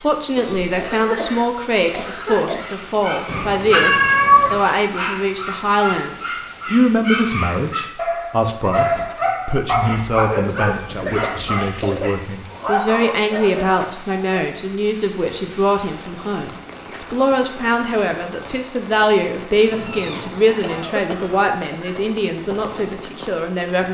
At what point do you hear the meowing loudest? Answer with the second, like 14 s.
4 s.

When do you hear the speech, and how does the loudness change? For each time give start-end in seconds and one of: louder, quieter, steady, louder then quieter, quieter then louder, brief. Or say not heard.
0.0-23.8 steady.